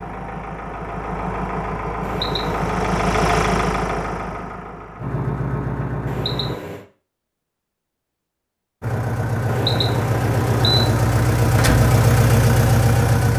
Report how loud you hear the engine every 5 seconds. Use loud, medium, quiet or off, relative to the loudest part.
medium, medium, loud.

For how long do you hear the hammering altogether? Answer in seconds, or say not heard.
not heard.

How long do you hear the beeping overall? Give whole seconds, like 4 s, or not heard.
3 s.